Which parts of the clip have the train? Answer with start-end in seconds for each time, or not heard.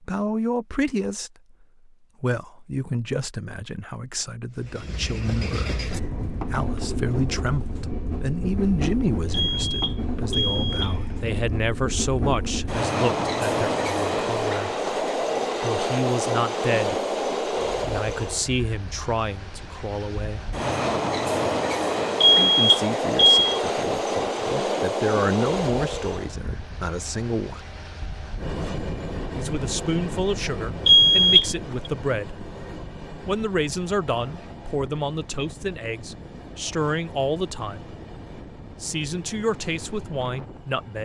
4.5-41.0.